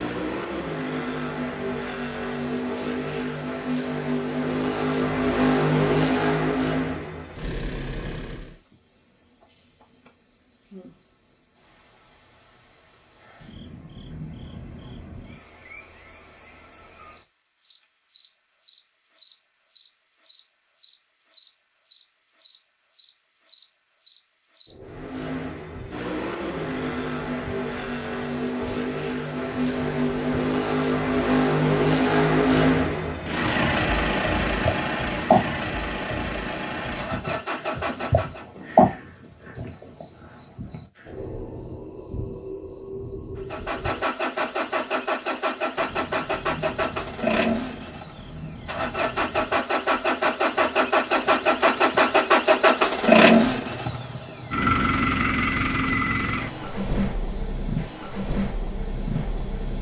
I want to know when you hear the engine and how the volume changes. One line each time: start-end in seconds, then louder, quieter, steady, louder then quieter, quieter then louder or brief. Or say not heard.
0.0-8.6 louder then quieter
24.9-38.5 louder then quieter
43.4-59.7 louder then quieter.